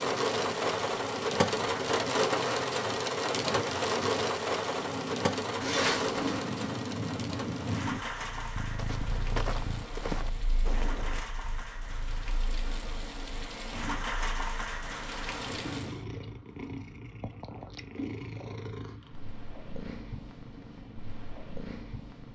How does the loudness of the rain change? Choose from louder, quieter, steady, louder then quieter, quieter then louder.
quieter then louder.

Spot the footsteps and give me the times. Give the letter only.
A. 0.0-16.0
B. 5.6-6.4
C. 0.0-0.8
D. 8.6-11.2
D.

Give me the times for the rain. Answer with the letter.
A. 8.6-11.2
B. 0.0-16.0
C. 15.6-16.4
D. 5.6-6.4
B.